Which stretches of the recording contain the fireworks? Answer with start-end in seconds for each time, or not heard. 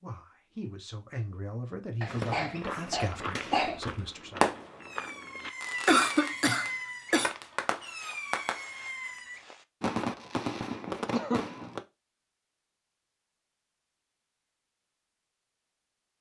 2.0-11.8.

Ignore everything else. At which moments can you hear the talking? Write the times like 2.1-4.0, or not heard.
0.0-4.5.